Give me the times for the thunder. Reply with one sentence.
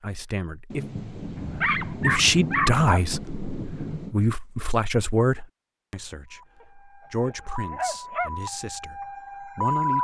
The thunder can be heard from 0.7 to 4.2 s.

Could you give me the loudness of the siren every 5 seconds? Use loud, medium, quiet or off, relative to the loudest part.
off, loud.